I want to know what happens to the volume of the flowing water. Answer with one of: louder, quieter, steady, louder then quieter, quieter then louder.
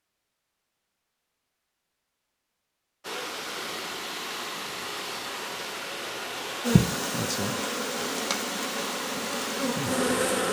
steady.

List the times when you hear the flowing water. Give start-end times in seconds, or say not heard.
3.0-10.4.